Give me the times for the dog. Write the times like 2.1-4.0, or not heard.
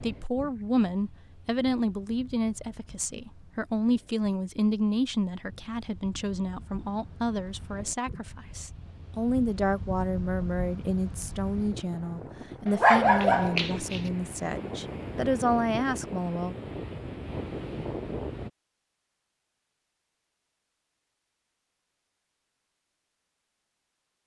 12.7-14.1.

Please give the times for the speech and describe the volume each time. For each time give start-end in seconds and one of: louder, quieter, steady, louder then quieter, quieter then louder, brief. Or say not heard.
0.0-16.6 steady.